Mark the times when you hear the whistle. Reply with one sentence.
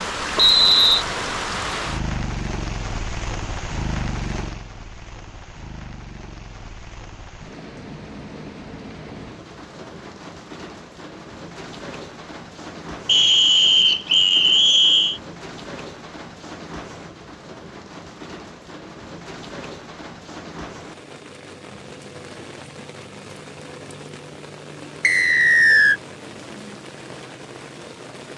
You can hear the whistle from 0.3 to 1.1 s, from 13.1 to 15.2 s and from 25.0 to 26.0 s.